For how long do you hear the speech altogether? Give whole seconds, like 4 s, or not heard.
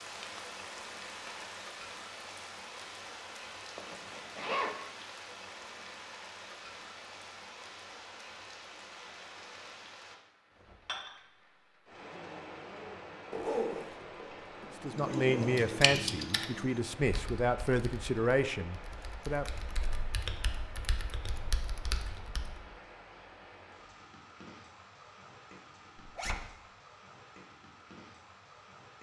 5 s.